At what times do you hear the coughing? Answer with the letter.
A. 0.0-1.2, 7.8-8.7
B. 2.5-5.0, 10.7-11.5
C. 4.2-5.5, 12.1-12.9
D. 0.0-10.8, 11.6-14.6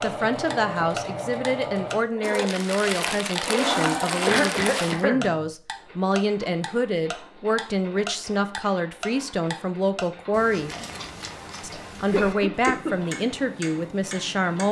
C.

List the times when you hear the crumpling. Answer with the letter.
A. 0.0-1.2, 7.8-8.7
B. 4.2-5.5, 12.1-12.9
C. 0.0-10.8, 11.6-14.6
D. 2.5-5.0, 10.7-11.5
D.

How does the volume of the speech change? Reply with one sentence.
The loudness of the speech stays about the same.